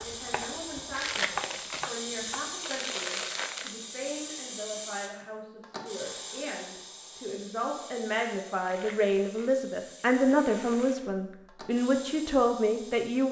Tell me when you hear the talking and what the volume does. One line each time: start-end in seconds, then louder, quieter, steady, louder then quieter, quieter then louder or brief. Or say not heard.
0.0-13.2 louder.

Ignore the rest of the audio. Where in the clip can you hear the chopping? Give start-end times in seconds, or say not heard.
0.0-2.5.